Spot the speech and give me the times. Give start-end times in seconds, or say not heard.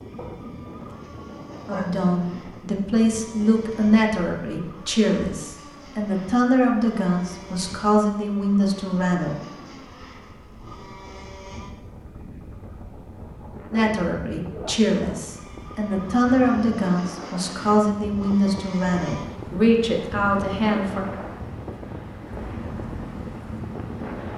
1.6-9.3, 13.7-21.1.